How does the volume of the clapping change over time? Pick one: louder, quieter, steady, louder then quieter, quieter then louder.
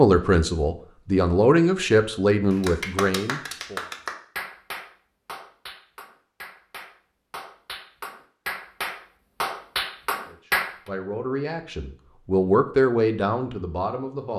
quieter then louder.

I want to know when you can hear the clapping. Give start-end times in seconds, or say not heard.
2.5-10.7.